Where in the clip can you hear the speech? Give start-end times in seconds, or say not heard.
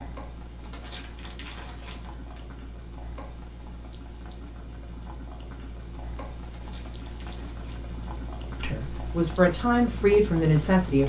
8.6-11.0.